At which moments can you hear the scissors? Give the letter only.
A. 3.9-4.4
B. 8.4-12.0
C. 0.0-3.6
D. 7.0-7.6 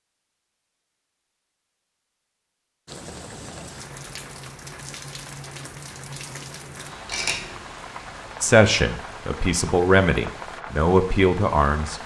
D.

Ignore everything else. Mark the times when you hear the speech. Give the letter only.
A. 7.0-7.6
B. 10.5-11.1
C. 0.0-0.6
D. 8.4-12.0
D.